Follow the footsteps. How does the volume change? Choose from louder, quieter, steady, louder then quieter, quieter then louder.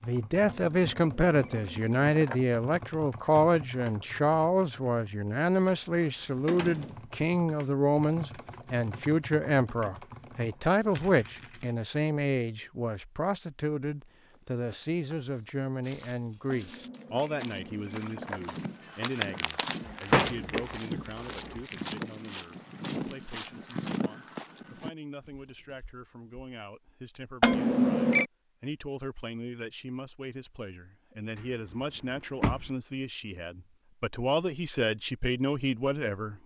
louder.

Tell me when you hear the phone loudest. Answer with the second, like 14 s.
28 s.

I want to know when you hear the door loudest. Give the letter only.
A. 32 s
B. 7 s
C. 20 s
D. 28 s
C.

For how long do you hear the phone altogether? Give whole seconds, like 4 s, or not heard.
5 s.